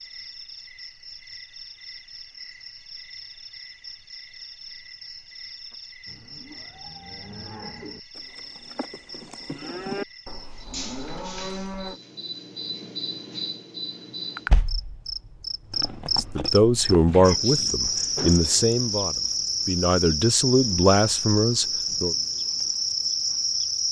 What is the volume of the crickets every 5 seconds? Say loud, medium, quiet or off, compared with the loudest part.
quiet, quiet, medium, loud, loud.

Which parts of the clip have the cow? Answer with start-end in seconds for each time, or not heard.
5.7-12.0.